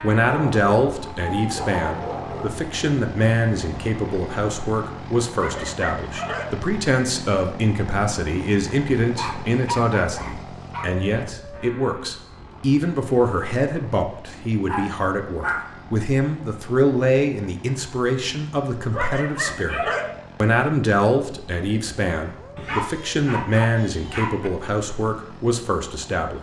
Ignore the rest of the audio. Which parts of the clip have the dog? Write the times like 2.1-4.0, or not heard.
0.2-2.6, 5.3-6.5, 9.0-10.9, 14.7-15.8, 18.9-20.1, 22.6-24.5.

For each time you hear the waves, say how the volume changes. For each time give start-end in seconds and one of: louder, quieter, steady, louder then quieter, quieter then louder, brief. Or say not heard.
not heard.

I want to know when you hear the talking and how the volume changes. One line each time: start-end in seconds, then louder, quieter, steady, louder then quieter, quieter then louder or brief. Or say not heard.
0.0-26.3 steady.